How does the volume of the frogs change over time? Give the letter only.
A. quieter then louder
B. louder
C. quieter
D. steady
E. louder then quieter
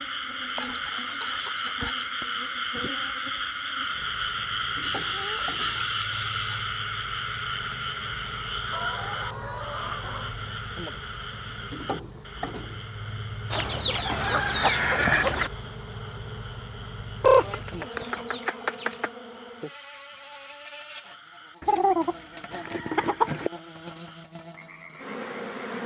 C.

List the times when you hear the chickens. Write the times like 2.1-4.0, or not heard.
0.6-2.0, 4.8-6.7, 8.7-10.3, 13.5-15.5, 17.2-19.1, 21.6-23.5.